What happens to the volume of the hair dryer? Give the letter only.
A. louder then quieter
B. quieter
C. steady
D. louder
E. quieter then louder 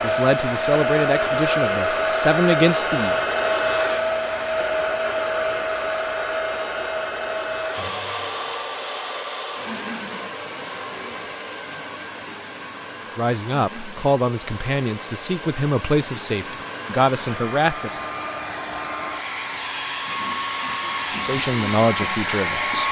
E.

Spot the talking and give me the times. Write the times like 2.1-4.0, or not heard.
0.0-3.1, 13.2-17.9, 21.1-22.8.